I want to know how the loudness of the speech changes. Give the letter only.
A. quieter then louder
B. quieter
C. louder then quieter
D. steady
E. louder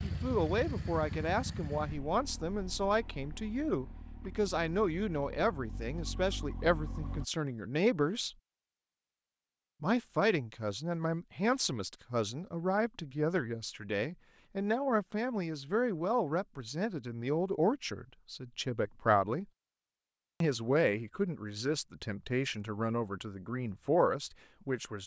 D.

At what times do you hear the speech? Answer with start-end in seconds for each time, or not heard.
0.0-8.3, 9.8-19.4, 20.4-25.0.